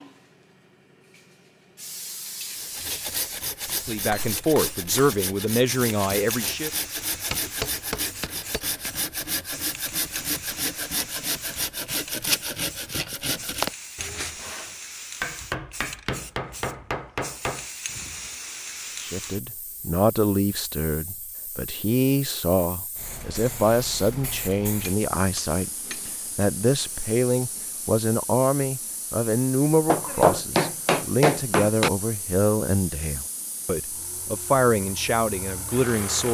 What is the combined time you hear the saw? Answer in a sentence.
You can hear the saw for 12 seconds altogether.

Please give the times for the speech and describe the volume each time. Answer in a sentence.
You can hear the speech briefly from 3.9 to 6.7 s; and from 19.0 to 36.2 s, at a steady volume.